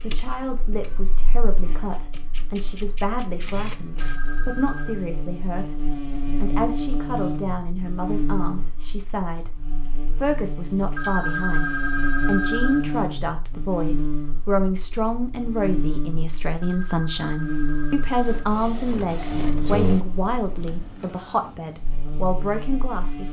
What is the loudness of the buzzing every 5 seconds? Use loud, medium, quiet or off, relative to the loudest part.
quiet, loud, loud, loud, medium.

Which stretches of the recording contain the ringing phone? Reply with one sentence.
The ringing phone can be heard from 4.0 to 5.0 s, from 10.9 to 12.9 s and from 16.6 to 18.5 s.